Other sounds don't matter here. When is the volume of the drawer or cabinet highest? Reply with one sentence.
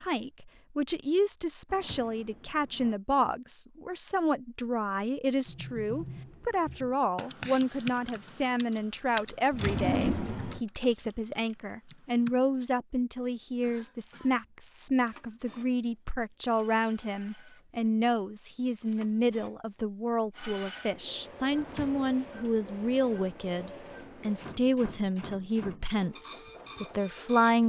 The volume of the drawer or cabinet peaks at 10 seconds.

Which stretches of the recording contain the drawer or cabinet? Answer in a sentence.
You can hear the drawer or cabinet from 1.6 to 3.0 s, from 9.5 to 10.6 s and from 21.6 to 22.1 s.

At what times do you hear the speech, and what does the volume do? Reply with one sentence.
The speech can be heard from 0.0 to 27.6 s, at a steady volume.